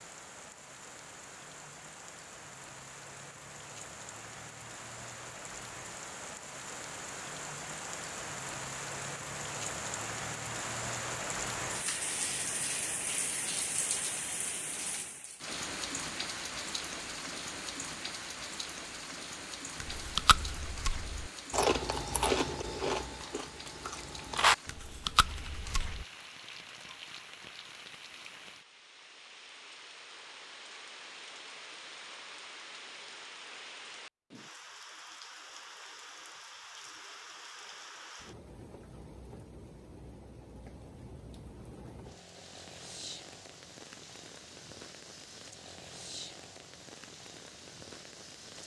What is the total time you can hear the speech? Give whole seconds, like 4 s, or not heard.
not heard.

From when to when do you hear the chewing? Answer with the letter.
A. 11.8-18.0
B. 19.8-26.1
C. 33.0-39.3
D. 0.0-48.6
B.